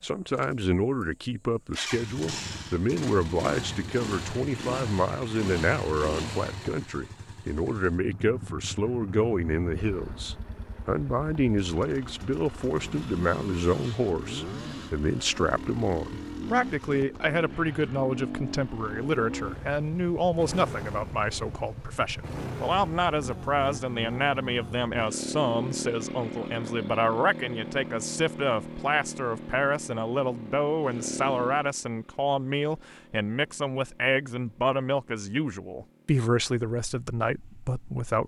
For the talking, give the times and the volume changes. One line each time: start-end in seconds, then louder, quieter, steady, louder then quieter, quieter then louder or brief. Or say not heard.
0.0-38.2 steady.